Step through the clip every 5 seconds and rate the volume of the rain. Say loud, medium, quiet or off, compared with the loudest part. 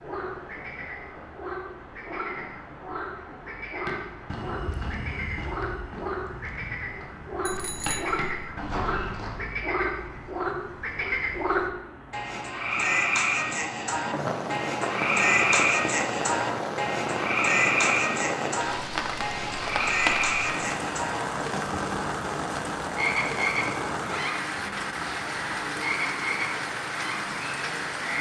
quiet, quiet, medium, loud, loud, loud.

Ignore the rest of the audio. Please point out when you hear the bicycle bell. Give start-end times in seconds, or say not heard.
7.5-8.3.